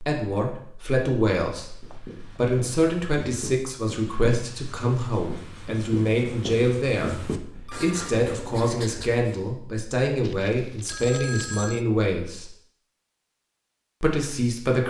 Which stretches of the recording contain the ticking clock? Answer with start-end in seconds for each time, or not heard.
not heard.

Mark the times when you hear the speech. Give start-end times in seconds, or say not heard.
0.0-12.5, 14.0-14.8.